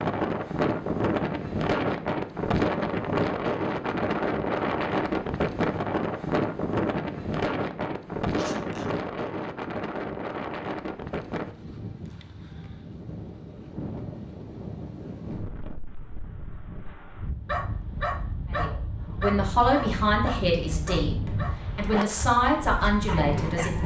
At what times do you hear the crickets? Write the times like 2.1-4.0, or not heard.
not heard.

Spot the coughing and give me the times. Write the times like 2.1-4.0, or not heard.
not heard.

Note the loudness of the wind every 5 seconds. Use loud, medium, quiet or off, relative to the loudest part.
loud, loud, medium, quiet, medium.